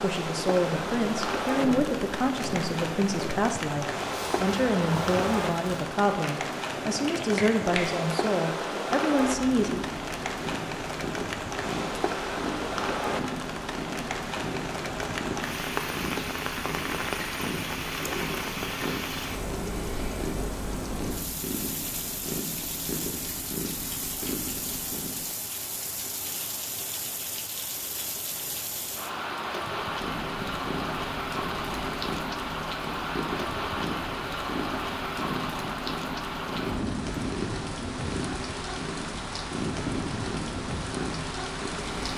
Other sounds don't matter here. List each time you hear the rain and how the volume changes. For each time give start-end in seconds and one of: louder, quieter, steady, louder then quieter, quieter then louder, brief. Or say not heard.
0.0-42.1 steady.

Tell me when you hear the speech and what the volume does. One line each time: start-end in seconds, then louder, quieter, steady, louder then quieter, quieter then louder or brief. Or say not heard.
0.0-9.8 steady.